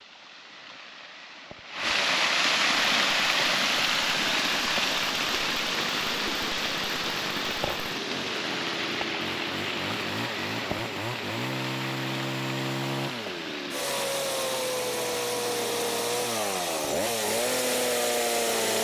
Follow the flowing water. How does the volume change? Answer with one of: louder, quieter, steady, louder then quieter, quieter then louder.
quieter.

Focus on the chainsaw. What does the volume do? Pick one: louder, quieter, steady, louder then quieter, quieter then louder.
louder.